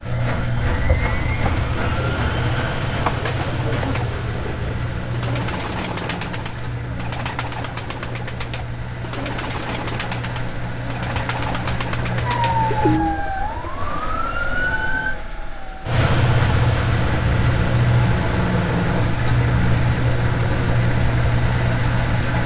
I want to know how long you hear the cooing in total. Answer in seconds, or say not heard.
12 s.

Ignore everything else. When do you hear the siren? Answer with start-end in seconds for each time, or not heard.
12.2-15.2.